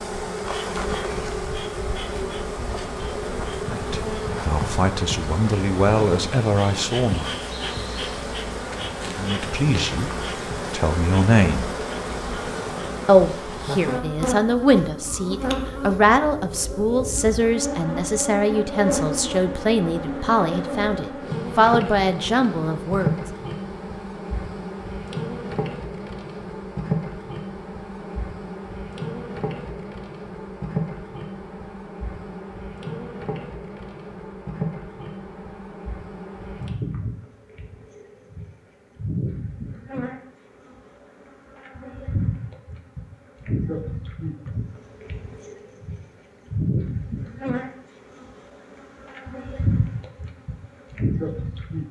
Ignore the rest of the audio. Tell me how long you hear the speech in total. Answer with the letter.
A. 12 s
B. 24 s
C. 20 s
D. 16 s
D.